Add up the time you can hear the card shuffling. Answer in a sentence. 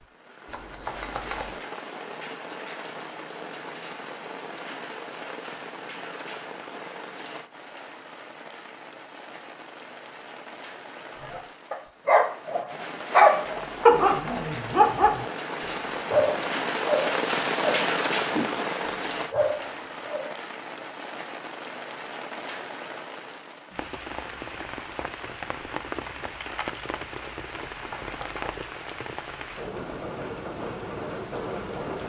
The card shuffling can be heard for 3 seconds in total.